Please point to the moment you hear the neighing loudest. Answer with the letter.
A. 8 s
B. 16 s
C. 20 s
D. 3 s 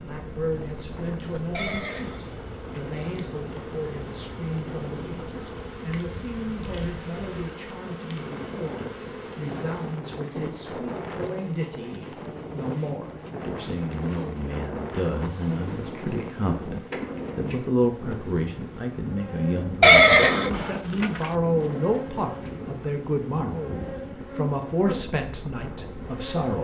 C.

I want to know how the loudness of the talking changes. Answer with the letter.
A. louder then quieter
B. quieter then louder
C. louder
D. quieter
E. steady
C.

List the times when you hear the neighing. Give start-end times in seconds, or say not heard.
1.5-3.0, 19.8-21.3.